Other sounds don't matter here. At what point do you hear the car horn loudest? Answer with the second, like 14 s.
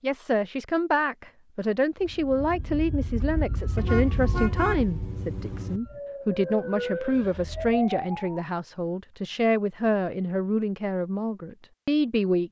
5 s.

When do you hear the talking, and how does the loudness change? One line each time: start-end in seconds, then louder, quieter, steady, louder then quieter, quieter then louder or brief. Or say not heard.
0.0-12.4 steady.